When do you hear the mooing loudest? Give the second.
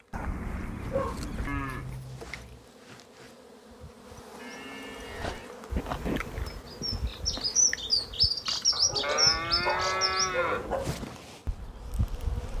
10 s.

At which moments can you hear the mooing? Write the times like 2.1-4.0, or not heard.
0.1-2.0, 4.3-6.4, 9.0-10.7.